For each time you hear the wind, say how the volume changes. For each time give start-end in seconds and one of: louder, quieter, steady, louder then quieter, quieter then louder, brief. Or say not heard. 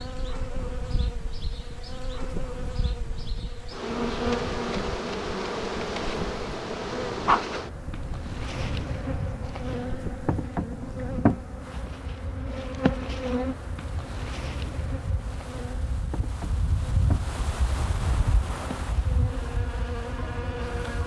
0.0-21.0 louder.